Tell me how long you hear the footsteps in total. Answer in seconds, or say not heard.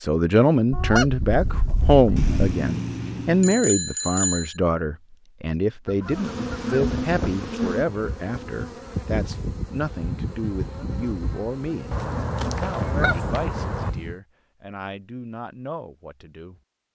not heard.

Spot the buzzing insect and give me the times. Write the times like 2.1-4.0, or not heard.
6.0-14.2.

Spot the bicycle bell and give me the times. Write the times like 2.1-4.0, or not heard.
2.1-4.5.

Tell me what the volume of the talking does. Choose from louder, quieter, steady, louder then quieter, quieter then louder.
quieter.